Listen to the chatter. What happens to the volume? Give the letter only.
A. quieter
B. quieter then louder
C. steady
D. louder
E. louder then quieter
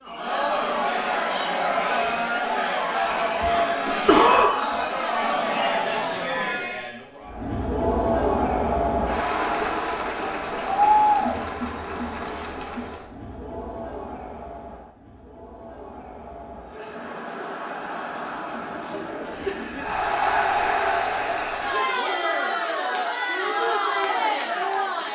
B.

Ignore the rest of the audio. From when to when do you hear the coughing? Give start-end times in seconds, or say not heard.
3.9-4.5, 19.3-20.1.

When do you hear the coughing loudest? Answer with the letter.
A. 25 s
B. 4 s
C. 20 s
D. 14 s
B.